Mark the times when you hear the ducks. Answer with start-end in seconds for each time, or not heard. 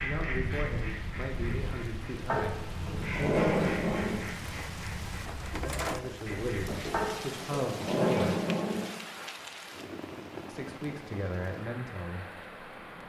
0.0-6.8.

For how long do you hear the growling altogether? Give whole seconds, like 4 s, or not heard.
4 s.